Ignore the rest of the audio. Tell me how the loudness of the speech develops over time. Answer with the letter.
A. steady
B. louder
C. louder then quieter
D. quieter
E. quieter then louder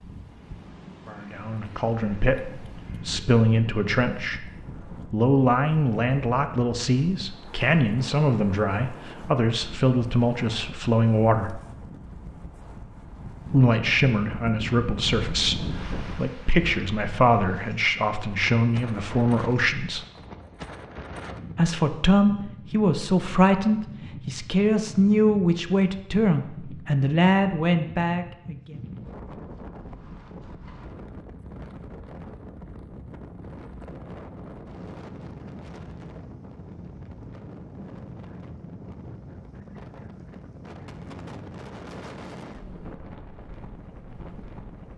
A.